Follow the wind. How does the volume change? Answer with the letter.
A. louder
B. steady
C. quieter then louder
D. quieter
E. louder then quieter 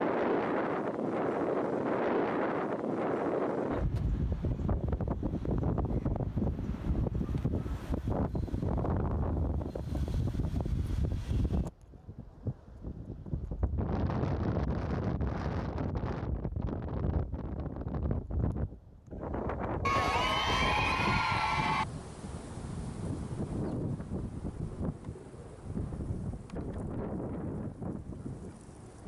D.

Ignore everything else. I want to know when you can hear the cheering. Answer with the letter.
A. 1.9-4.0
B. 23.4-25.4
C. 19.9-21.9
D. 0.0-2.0
C.